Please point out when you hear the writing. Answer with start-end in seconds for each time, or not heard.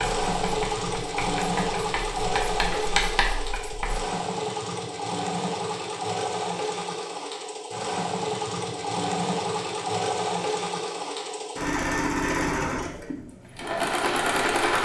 0.0-4.0.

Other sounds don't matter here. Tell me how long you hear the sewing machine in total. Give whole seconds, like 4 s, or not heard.
15 s.